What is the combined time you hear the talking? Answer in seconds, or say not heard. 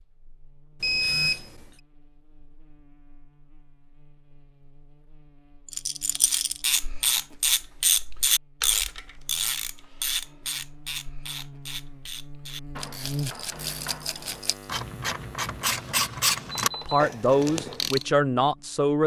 2 s.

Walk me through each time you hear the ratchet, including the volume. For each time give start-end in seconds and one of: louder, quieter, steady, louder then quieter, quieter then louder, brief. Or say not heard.
6.2-18.1 quieter then louder.